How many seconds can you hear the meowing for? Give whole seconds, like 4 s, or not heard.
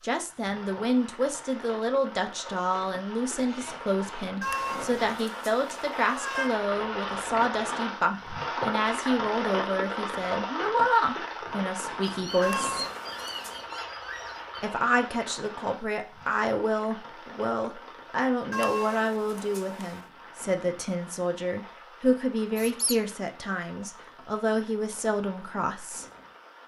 5 s.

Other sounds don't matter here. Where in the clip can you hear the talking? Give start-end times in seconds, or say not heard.
0.0-12.8, 14.6-26.1.